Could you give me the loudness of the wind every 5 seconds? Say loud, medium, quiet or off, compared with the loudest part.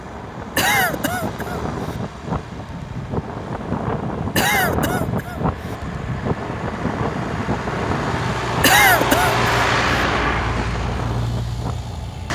loud, loud, medium.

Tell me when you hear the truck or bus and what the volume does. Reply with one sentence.
You can hear the truck or bus from 0.0 to 12.3 s, getting louder.